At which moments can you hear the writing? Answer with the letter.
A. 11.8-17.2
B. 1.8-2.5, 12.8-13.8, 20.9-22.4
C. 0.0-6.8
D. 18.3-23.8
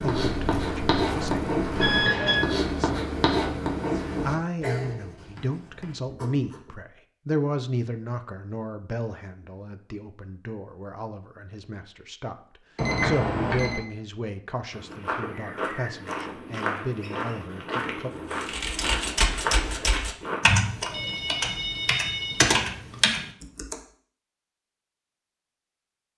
C.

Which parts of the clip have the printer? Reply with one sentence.
The printer can't be heard in this clip.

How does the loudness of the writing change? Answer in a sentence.
The loudness of the writing goes down.